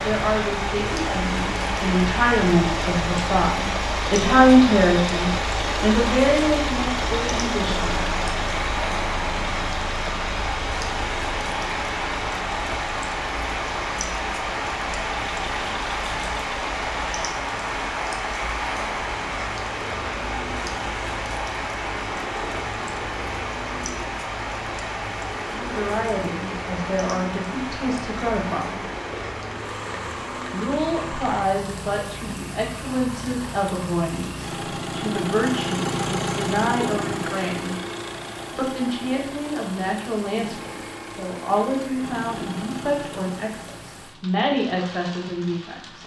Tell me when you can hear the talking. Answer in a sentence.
The talking can be heard from 0.0 to 8.2 s, from 25.6 to 28.8 s, from 30.5 to 37.8 s and from 38.5 to 46.0 s.